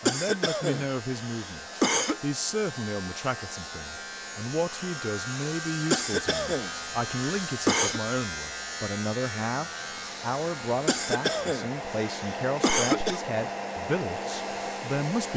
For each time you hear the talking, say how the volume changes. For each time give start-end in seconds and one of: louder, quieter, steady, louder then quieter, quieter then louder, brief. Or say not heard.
0.0-15.3 steady.